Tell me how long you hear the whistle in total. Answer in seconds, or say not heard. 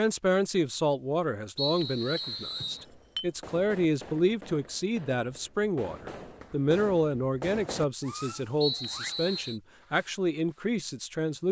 2 s.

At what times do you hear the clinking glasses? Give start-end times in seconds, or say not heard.
2.1-3.3.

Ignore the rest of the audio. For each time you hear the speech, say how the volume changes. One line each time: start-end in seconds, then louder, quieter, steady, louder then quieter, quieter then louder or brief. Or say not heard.
0.0-11.4 steady.